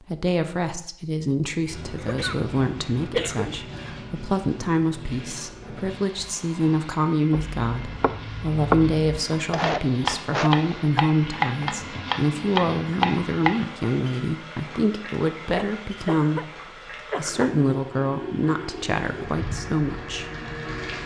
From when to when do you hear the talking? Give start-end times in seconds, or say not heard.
0.0-16.5, 17.1-20.2.